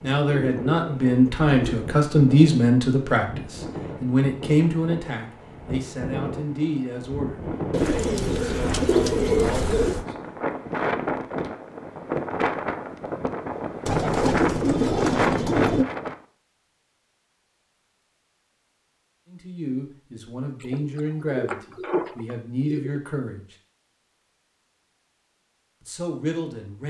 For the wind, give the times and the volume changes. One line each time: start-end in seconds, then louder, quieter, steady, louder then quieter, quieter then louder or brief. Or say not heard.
0.0-16.1 louder.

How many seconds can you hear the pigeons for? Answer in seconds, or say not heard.
8 s.